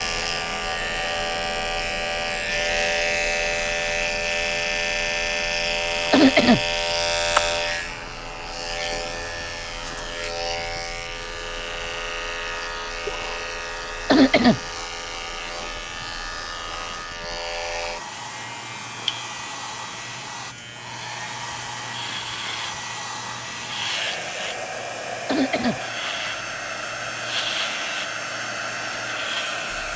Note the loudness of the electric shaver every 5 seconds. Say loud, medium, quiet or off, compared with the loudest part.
loud, loud, medium, medium, medium, medium.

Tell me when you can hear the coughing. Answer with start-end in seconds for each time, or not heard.
6.1-6.7, 14.1-14.6, 25.2-25.8.